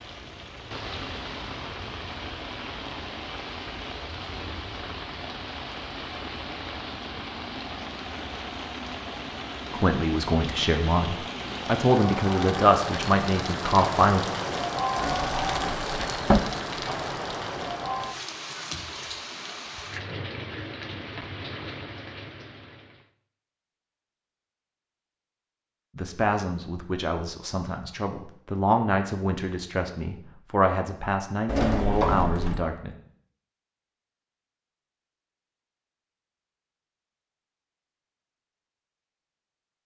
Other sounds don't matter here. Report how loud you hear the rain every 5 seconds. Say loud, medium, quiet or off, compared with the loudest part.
medium, medium, loud, loud, medium, off, off, off.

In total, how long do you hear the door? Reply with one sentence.
You can hear the door for 3 seconds altogether.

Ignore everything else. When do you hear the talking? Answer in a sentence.
The talking can be heard from 9.7 to 14.2 s and from 25.9 to 33.0 s.